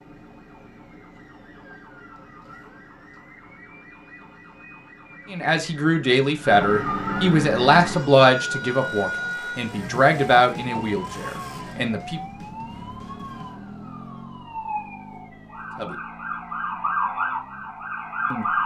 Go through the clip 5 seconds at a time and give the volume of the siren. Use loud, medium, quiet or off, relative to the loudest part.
quiet, loud, medium, loud.